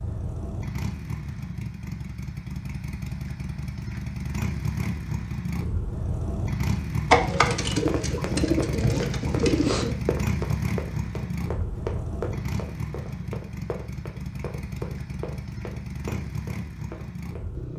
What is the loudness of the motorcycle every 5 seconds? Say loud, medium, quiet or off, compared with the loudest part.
loud, loud, loud, medium.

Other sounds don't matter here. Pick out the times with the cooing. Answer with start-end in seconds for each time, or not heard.
7.1-9.9.